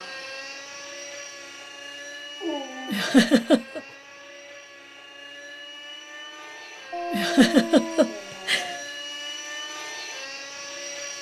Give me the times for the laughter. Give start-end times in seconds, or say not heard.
2.9-3.8, 7.1-8.7.